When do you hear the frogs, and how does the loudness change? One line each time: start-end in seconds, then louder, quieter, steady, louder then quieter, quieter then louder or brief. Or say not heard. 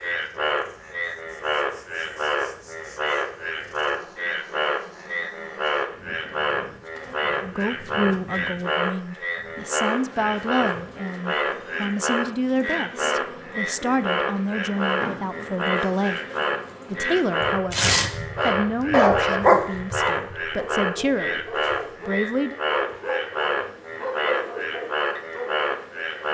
0.0-26.3 steady.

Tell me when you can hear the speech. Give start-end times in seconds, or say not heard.
7.4-16.2, 16.9-21.4, 22.1-22.6.